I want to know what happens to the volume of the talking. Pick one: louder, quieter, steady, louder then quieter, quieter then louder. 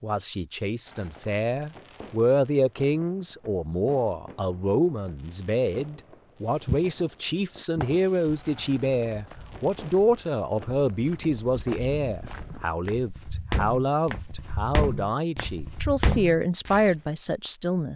steady.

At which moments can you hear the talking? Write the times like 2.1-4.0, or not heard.
0.0-17.9.